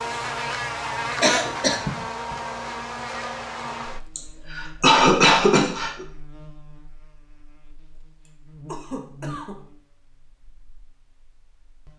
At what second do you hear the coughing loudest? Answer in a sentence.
The loudest moment of the coughing is at 5 seconds.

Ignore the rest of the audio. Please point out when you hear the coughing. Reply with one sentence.
The coughing can be heard from 1.2 to 2.4 s, from 4.2 to 6.0 s and from 8.2 to 9.6 s.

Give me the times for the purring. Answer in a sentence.
You can't hear the purring here.